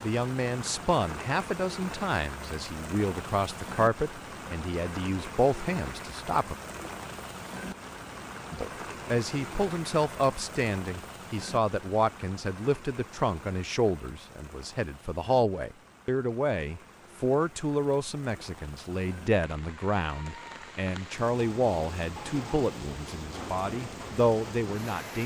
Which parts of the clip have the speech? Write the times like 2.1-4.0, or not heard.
0.0-6.5, 8.5-25.2.